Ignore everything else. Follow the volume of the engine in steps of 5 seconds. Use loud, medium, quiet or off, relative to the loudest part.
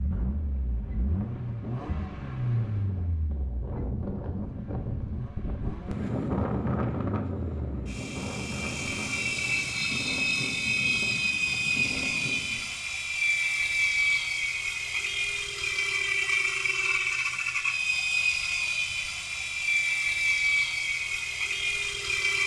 medium, medium, loud, loud, loud.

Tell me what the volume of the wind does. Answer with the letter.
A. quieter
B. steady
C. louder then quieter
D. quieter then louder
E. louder
C.